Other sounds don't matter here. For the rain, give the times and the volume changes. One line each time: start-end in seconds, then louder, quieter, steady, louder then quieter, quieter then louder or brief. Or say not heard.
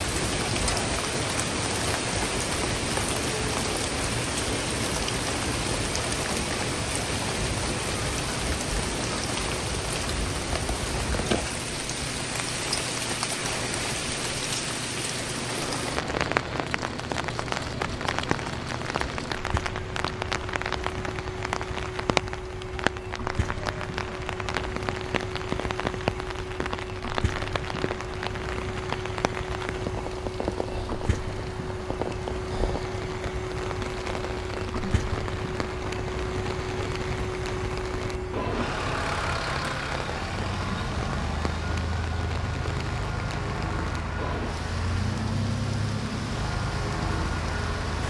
0.0-48.0 quieter.